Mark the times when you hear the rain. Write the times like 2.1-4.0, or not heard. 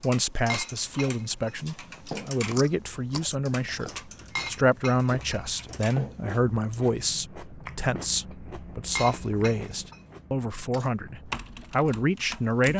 not heard.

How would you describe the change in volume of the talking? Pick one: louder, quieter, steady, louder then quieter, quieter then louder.
steady.